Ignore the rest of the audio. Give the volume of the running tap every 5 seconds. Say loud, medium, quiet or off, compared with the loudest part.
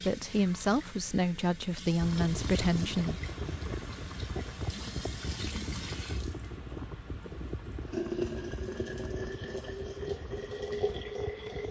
medium, loud, loud.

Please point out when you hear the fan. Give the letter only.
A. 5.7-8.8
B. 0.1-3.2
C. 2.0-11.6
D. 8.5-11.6
C.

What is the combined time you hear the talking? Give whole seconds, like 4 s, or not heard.
3 s.